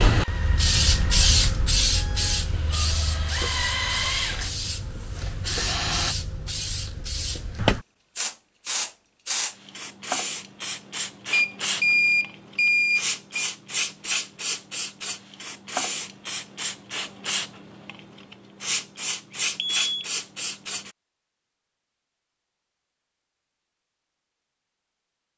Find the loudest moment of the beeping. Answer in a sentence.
The loudest moment of the beeping is at 12 seconds.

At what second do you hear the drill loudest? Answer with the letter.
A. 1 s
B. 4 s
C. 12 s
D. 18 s
B.